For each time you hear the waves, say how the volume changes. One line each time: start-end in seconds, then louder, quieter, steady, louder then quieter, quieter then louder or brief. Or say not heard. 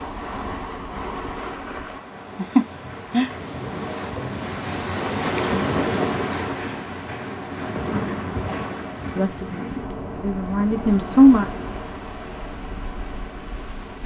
0.0-14.0 quieter.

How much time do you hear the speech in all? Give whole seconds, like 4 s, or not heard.
2 s.